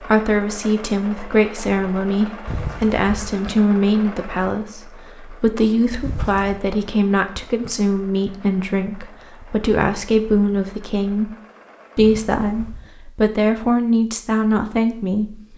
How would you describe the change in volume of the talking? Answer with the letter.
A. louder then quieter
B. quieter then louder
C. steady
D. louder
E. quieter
C.